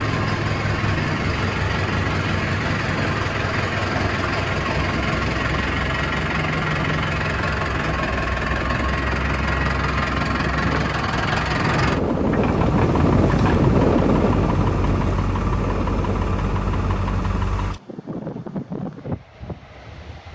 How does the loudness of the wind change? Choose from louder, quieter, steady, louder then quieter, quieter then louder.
louder then quieter.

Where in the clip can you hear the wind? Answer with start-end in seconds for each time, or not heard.
0.0-20.2.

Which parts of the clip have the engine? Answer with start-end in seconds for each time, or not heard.
0.0-17.8.